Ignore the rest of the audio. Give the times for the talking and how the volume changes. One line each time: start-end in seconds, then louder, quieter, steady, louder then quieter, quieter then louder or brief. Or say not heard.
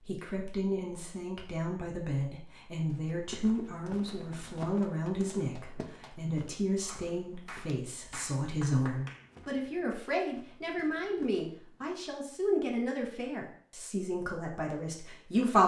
0.1-15.6 steady.